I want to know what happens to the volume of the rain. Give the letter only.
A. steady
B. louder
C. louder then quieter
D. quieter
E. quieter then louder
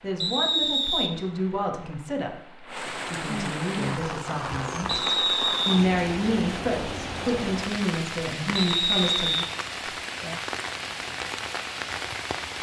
B.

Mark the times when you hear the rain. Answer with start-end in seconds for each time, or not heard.
0.0-12.5.